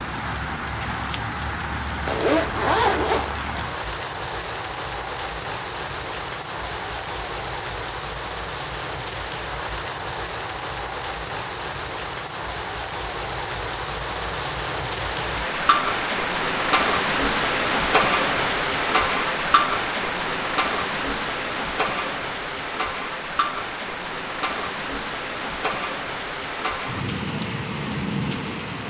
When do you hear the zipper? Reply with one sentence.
The zipper can be heard from 2.0 to 3.7 s.